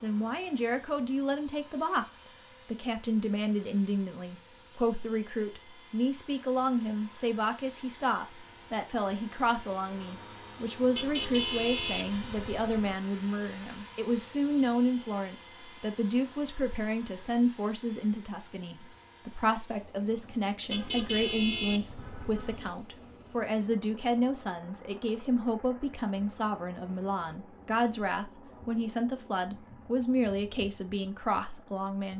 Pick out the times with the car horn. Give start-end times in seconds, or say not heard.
10.9-12.9, 20.7-22.7.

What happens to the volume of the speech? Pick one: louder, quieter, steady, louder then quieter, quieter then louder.
steady.